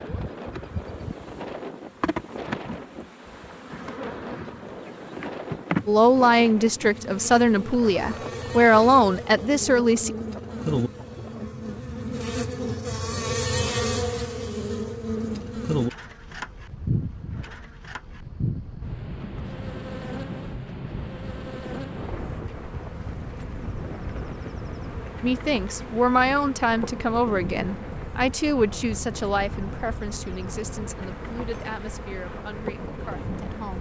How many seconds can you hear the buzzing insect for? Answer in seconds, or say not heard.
34 s.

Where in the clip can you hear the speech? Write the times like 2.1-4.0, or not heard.
5.8-10.1, 25.2-33.7.